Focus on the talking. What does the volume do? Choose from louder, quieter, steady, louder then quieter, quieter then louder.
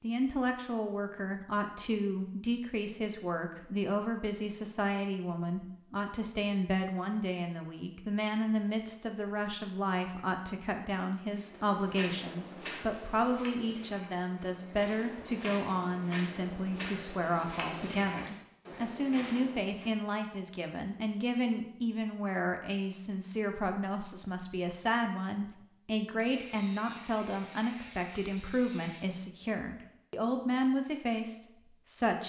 steady.